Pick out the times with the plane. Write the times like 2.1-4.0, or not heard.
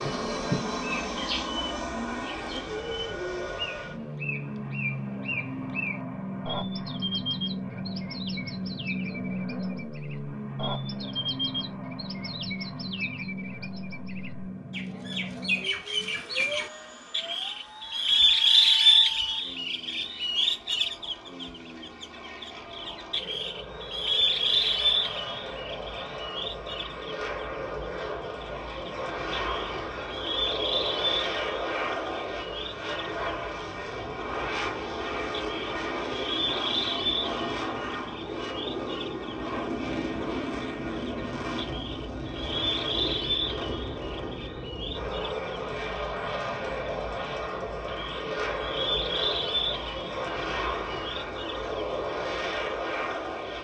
0.0-53.6.